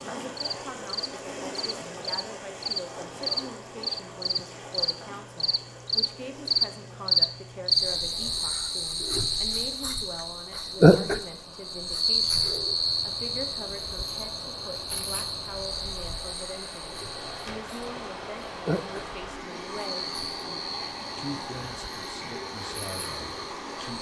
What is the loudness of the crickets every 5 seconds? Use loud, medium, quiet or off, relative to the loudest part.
medium, loud, loud, medium, quiet.